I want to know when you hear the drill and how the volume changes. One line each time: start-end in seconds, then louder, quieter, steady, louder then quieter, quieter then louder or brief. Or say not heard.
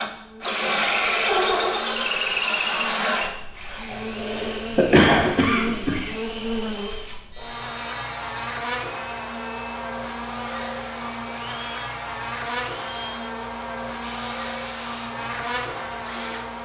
0.0-16.6 quieter.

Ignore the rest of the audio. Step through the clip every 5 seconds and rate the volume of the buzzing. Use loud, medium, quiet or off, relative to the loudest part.
medium, loud, loud, loud.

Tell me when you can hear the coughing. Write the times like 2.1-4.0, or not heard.
3.9-6.1.